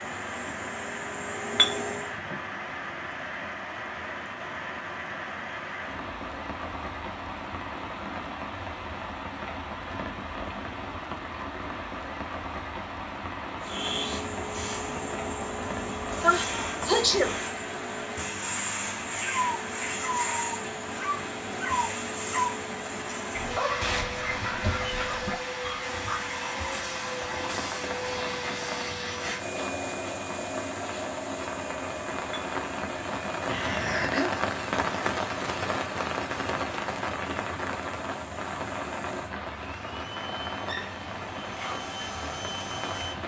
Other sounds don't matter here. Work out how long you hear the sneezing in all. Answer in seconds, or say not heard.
2 s.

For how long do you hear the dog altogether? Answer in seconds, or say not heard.
7 s.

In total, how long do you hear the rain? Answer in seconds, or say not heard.
43 s.